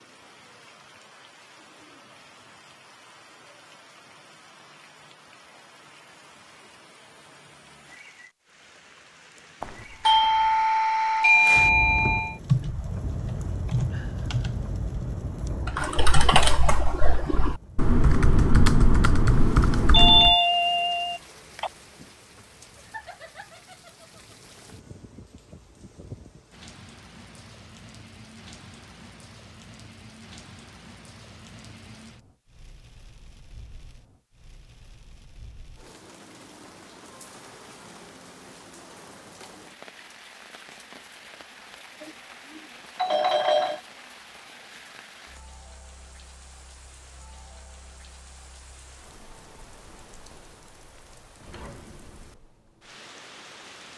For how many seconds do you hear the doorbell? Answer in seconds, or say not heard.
6 s.